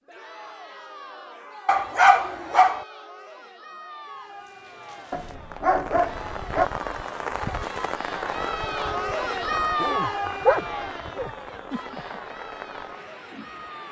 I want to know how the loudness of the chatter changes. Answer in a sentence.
The volume of the chatter goes up, then down.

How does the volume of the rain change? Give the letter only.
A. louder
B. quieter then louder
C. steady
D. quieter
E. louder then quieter
E.